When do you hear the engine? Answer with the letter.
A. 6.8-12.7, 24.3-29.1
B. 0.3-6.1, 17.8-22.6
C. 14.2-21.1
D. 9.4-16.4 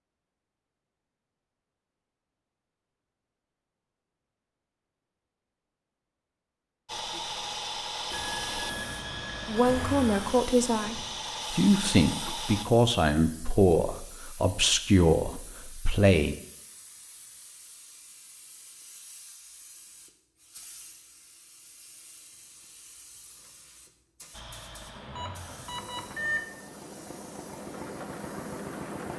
A.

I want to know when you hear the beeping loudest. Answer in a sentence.
The loudest moment of the beeping is at 26 seconds.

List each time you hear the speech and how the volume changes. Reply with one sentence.
You can hear the speech from 9.4 to 16.4 s, at a steady volume.